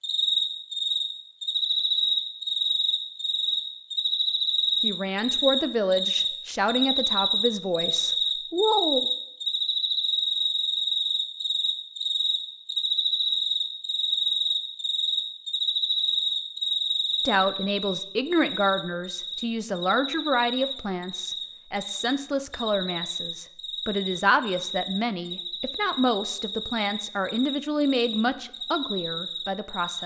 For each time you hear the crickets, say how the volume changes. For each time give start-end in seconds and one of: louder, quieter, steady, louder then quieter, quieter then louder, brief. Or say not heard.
0.0-30.0 quieter.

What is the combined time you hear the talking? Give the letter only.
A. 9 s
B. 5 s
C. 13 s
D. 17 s
D.